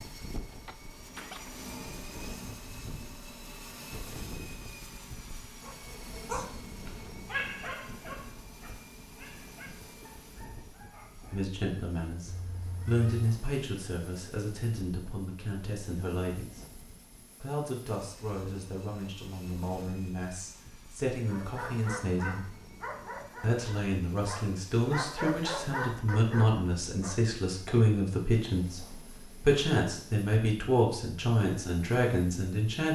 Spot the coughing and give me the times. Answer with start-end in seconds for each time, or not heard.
0.7-1.6.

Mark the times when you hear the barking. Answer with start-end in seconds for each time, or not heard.
5.6-11.6, 21.3-27.2.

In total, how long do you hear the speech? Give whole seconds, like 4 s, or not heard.
20 s.